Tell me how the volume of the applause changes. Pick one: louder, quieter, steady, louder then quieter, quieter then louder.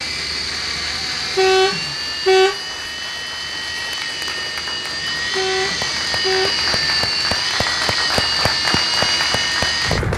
louder.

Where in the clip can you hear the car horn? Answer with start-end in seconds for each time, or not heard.
1.4-2.8, 5.3-6.6.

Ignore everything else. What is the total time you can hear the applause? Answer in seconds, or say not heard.
10 s.